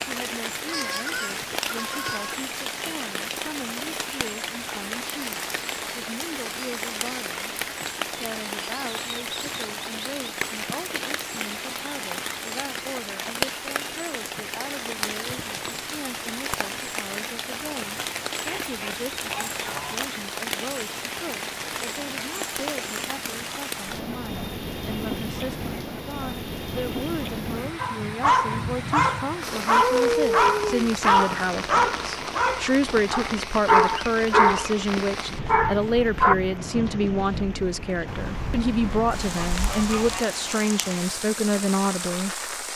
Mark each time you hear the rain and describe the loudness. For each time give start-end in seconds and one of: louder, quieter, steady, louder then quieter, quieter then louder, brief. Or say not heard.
0.0-42.7 steady.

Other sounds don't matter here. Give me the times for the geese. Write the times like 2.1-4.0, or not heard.
0.7-2.4, 18.4-20.1, 38.0-40.2.